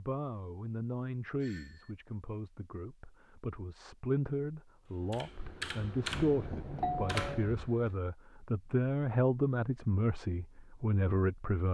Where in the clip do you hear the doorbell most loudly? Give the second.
7 s.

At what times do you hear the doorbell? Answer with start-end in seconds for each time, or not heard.
1.4-1.9, 6.1-7.5.